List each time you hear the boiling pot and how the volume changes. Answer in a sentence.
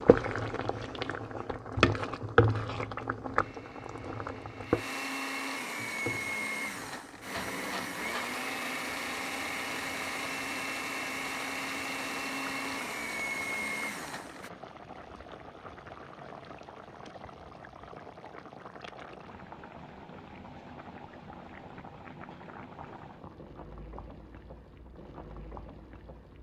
You can hear the boiling pot from 0.0 to 26.3 s, getting quieter.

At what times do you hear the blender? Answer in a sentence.
You can hear the blender from 3.4 to 14.5 s.